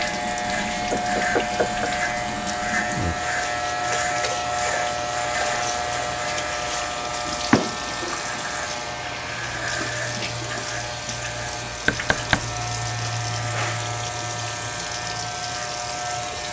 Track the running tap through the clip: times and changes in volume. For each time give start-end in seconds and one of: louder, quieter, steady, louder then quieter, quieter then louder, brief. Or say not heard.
0.0-16.4 steady.